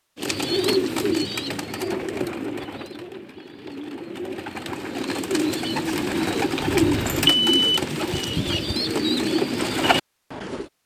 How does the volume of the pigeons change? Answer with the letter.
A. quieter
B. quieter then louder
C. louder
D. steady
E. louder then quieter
B.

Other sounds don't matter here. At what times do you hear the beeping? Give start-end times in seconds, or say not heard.
6.6-7.8.